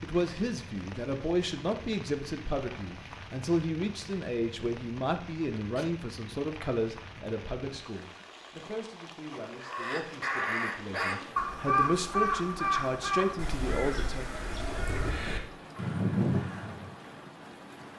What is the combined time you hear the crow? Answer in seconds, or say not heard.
7 s.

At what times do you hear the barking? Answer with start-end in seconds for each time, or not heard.
not heard.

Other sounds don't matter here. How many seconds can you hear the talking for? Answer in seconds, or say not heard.
14 s.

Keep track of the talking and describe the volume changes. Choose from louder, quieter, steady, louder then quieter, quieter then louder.
quieter then louder.